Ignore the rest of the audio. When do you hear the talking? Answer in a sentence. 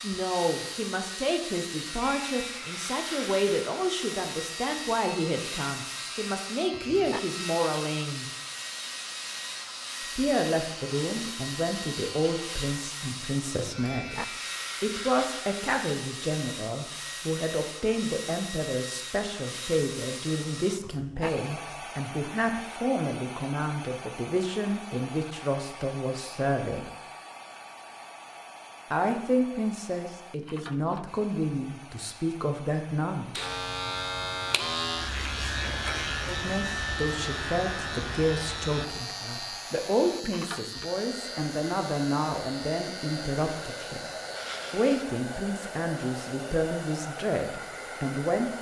You can hear the talking from 0.0 to 8.2 s, from 10.0 to 26.9 s, from 28.9 to 33.4 s, from 36.2 to 44.1 s and from 44.7 to 48.5 s.